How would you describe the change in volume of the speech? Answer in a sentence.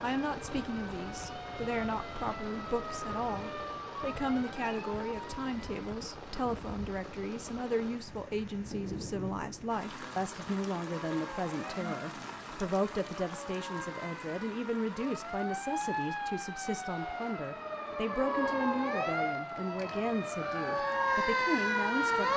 The loudness of the speech stays about the same.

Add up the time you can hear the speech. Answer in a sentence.
You can hear the speech for 22 seconds altogether.